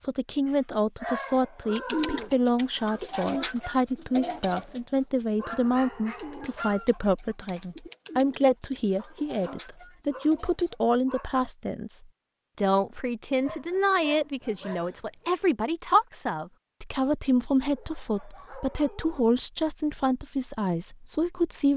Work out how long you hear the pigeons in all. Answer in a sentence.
The pigeons can be heard for 9 seconds in total.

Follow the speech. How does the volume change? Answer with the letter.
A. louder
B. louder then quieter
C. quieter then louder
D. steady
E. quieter
D.